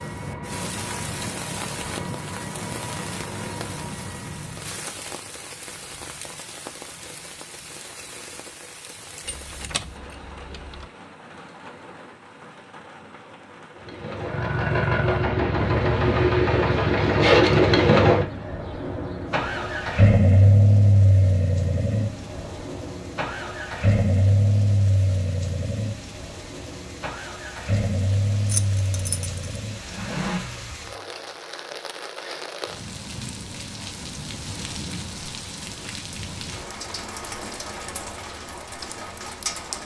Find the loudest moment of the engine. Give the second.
18 s.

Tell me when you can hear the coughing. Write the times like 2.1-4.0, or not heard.
not heard.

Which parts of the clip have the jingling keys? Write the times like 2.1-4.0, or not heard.
9.2-10.8, 28.4-29.4.